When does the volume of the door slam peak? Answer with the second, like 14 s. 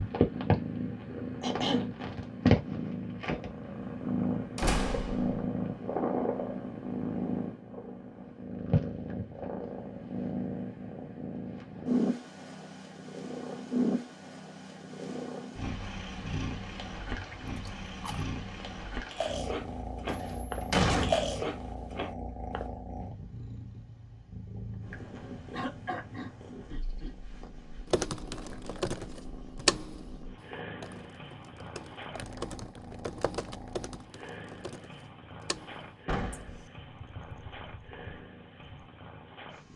21 s.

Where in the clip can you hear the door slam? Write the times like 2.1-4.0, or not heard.
4.5-5.5, 20.1-21.5, 36.0-36.5.